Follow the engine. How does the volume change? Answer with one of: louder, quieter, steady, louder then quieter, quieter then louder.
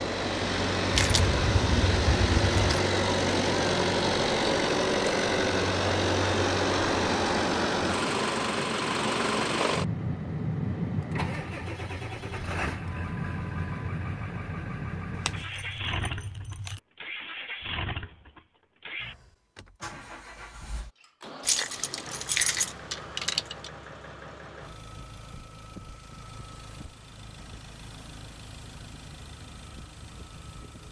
quieter.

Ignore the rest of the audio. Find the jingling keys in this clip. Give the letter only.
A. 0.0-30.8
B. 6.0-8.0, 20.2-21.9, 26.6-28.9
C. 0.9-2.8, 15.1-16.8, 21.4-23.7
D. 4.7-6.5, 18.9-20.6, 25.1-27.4
C.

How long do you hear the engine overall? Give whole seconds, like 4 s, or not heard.
31 s.